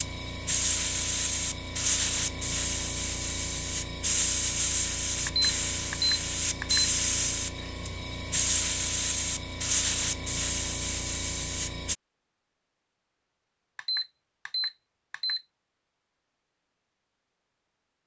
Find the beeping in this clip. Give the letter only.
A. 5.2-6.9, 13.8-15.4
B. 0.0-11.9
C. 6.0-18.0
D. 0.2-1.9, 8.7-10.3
A.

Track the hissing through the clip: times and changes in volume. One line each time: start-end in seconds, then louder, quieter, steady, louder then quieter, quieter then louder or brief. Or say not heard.
0.0-11.9 steady.